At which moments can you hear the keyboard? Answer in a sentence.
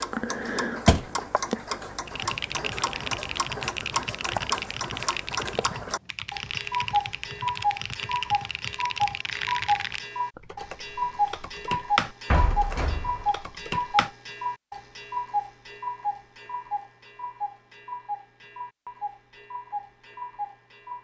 The keyboard can be heard from 2.0 to 14.2 s.